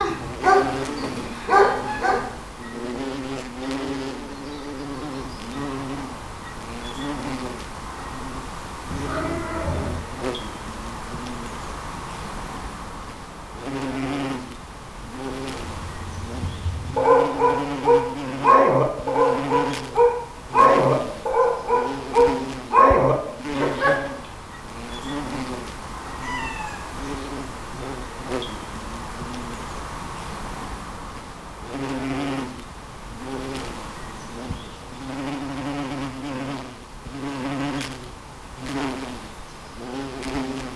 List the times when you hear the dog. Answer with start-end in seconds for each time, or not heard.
0.0-2.2, 15.7-23.9.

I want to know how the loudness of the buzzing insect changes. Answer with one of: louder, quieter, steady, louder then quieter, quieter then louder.
steady.